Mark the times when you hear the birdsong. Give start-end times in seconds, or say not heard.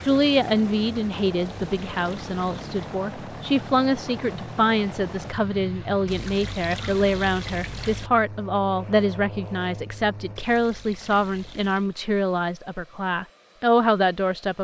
not heard.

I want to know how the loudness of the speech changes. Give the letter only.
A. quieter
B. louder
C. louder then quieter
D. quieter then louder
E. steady
E.